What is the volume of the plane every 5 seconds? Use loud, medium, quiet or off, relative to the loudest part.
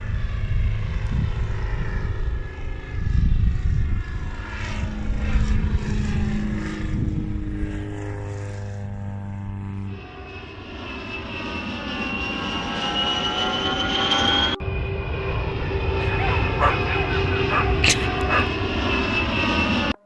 medium, medium, loud, loud.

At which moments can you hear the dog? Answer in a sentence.
You can hear the dog from 16.0 to 18.5 s.